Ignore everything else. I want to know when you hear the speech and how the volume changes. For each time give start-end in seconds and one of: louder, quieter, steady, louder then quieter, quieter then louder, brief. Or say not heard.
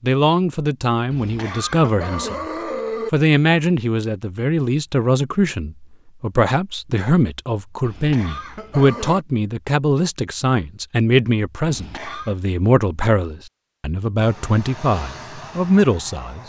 0.0-2.5 brief
3.1-16.4 steady.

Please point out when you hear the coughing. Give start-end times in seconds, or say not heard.
1.1-3.1, 7.8-9.2, 11.7-12.3.